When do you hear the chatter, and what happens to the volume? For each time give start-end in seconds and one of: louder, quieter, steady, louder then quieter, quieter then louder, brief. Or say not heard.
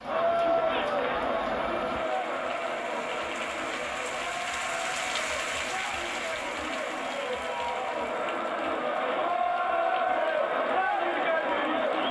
0.0-12.0 quieter then louder.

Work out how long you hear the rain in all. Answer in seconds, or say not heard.
12 s.